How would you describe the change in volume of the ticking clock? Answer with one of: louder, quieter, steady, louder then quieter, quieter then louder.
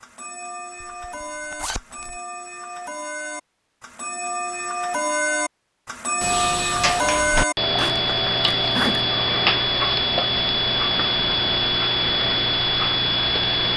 louder.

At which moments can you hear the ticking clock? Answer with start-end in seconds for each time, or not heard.
0.0-13.7.